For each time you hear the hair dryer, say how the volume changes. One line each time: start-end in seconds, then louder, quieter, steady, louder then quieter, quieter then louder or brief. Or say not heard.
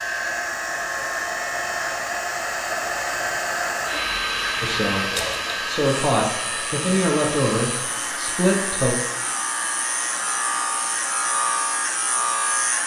0.0-12.8 quieter.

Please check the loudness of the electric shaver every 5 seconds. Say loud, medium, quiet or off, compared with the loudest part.
medium, medium, loud.